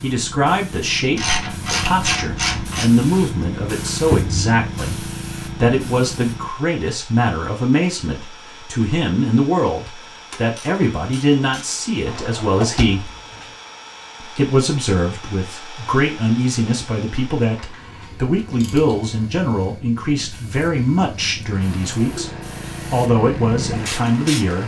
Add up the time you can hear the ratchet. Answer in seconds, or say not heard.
5 s.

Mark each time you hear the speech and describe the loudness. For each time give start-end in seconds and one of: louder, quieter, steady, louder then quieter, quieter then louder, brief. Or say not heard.
0.0-13.1 steady
14.2-24.6 steady.